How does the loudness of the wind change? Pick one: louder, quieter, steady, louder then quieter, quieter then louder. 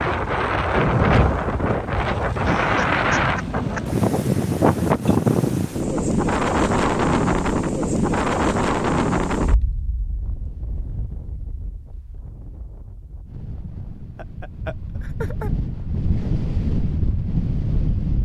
quieter then louder.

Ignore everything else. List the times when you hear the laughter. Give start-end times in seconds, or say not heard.
2.4-4.0, 14.2-15.5.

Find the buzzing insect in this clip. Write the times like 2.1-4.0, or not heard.
not heard.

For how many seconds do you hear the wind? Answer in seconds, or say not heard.
18 s.